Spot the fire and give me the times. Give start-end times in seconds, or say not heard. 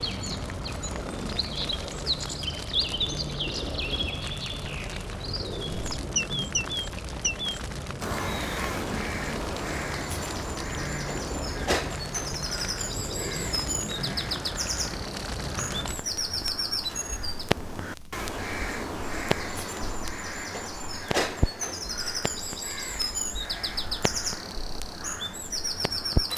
0.0-26.3.